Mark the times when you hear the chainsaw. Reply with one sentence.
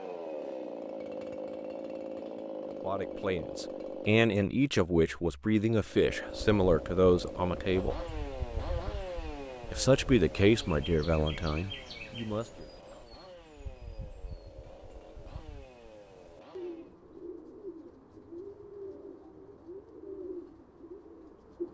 You can hear the chainsaw from 0.0 to 4.2 s and from 5.8 to 16.9 s.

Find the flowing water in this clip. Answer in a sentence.
You can't hear the flowing water here.